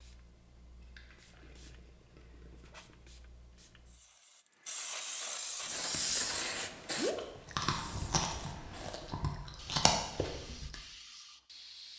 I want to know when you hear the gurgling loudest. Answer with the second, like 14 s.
7 s.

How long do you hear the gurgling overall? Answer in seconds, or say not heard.
3 s.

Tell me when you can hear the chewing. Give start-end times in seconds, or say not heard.
5.5-10.8.